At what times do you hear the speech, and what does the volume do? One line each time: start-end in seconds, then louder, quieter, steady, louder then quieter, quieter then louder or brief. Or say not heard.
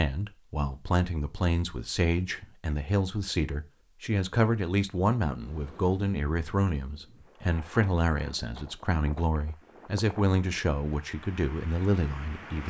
0.0-12.6 steady.